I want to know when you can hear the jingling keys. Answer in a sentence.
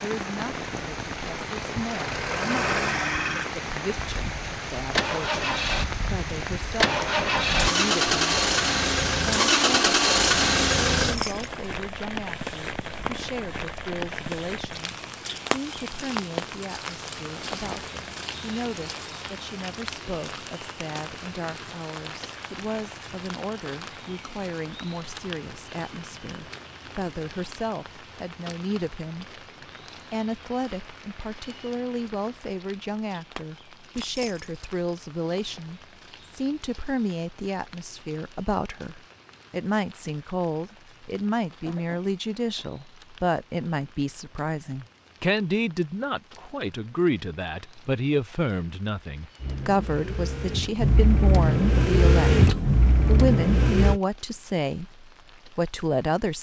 The jingling keys can be heard from 10.9 to 11.7 s and from 34.0 to 34.6 s.